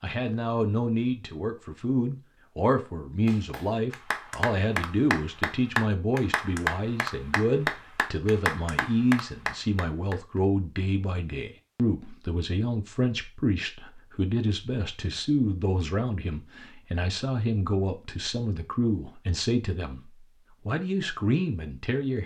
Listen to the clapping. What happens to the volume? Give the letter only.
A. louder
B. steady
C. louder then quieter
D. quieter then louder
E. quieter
B.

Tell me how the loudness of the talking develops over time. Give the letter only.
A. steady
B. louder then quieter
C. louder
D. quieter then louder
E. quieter
A.